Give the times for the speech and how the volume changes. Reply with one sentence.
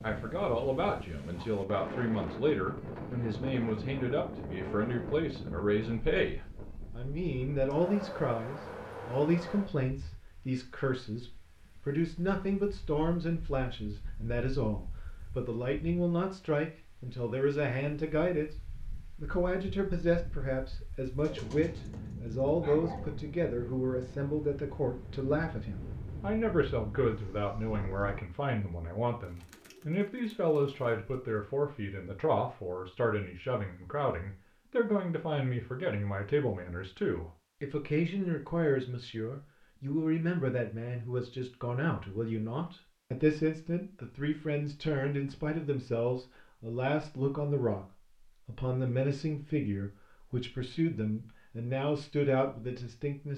The speech can be heard from 0.0 to 53.3 s, at a steady volume.